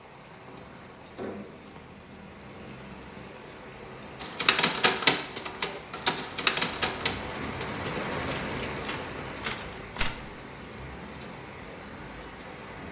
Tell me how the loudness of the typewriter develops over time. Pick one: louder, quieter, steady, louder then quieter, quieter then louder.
quieter then louder.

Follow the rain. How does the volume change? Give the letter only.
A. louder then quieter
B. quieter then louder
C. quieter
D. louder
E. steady
A.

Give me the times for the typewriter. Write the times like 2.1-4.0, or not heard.
4.2-10.2.